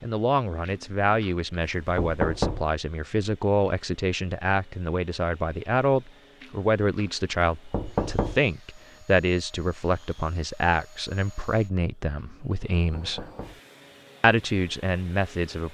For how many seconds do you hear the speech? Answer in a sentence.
You can hear the speech for 15 seconds altogether.